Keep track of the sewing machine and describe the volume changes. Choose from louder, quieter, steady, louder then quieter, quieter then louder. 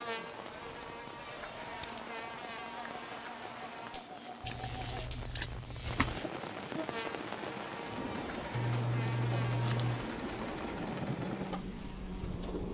louder.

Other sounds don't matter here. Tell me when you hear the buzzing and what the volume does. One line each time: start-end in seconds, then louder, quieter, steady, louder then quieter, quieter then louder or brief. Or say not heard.
0.0-12.6 steady.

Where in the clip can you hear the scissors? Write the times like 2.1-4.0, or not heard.
0.6-2.0, 4.5-6.2, 8.6-10.1.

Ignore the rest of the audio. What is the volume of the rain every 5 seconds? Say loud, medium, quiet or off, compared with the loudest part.
medium, loud, loud.